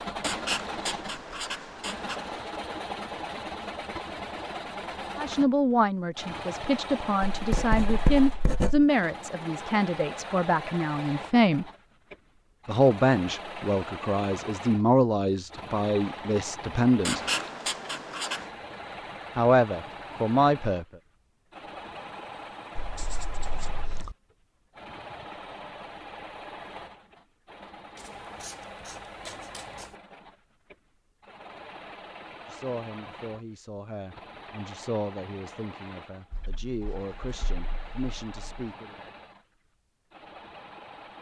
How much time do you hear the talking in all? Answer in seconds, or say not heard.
19 s.